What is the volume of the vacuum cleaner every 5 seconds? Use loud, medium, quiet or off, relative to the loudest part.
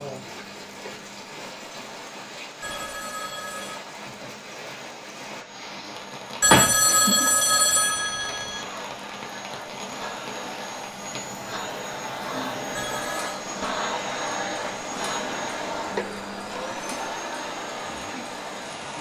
quiet, medium, loud, loud.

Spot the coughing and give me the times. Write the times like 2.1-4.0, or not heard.
6.5-7.3.